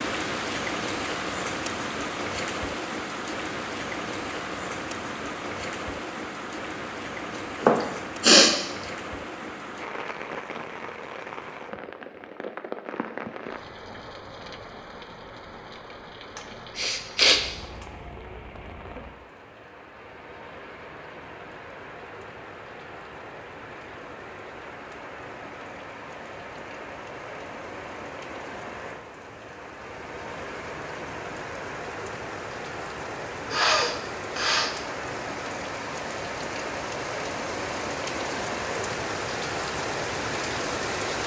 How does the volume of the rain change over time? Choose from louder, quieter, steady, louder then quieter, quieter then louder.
quieter then louder.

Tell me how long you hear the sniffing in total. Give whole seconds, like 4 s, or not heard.
3 s.